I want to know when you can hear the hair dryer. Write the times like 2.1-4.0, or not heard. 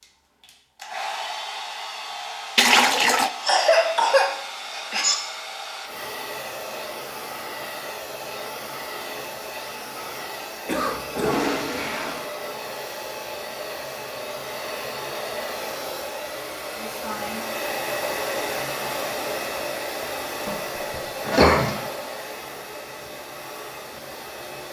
0.0-24.6.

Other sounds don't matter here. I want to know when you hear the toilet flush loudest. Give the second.
3 s.